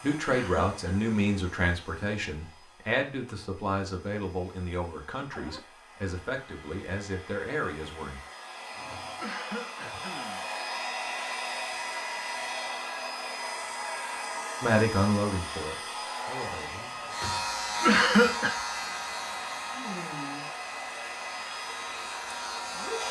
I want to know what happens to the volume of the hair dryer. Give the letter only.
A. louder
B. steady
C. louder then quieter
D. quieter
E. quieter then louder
A.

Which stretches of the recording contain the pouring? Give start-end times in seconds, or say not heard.
not heard.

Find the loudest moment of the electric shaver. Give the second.
18 s.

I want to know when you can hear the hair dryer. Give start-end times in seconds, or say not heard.
0.0-23.0.